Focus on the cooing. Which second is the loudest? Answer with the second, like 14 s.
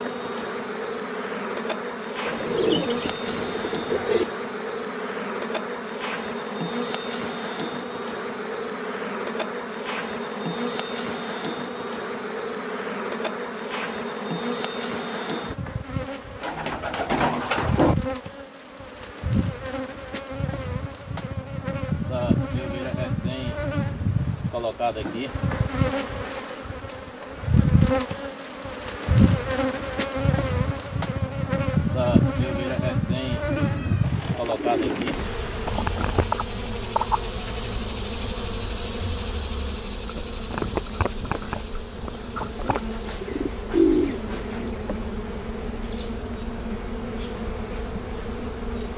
44 s.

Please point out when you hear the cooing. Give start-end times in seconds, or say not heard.
2.2-4.2, 16.4-17.9, 33.5-35.2, 42.6-44.7.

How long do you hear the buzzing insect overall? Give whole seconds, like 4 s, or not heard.
49 s.